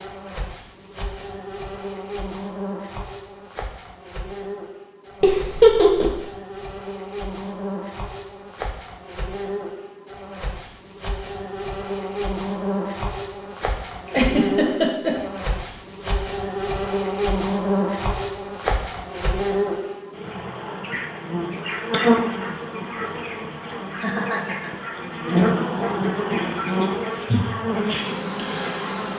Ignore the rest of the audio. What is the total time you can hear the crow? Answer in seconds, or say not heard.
not heard.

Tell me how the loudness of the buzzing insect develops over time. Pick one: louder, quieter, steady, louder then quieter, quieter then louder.
louder.